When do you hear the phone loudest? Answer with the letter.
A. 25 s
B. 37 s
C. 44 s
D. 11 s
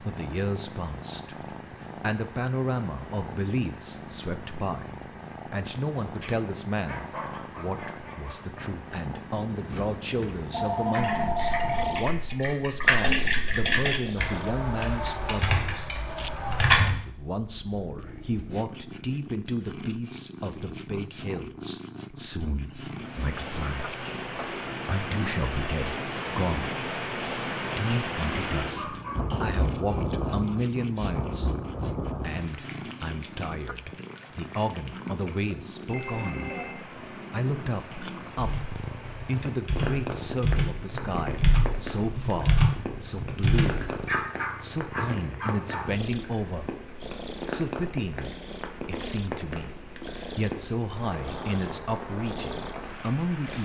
D.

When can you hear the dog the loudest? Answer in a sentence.
The volume of the dog peaks at 44 seconds.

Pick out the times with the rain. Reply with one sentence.
The rain can be heard from 22.9 to 53.6 s.